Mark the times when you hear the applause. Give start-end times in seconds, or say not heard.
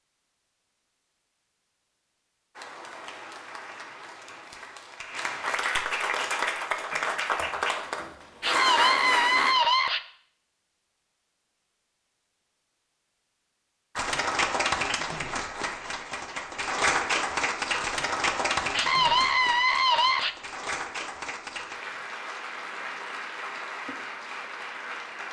2.5-9.6, 13.9-25.2.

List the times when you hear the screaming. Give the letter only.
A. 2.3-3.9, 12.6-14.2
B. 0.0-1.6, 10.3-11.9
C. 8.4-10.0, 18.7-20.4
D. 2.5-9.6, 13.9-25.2
C.